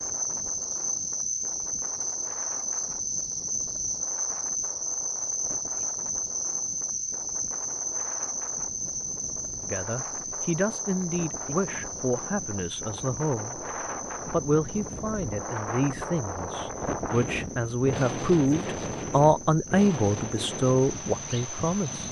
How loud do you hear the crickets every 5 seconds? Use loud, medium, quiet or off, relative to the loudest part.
loud, loud, medium, quiet, off.